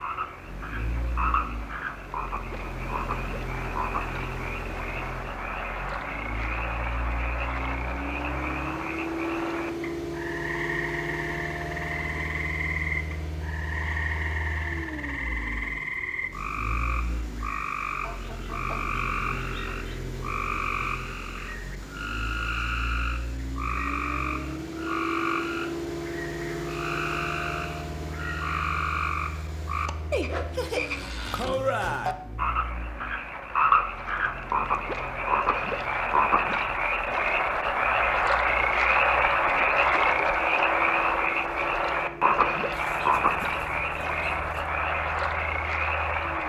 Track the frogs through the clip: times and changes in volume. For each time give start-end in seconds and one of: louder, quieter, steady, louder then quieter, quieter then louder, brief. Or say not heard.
0.0-46.4 louder.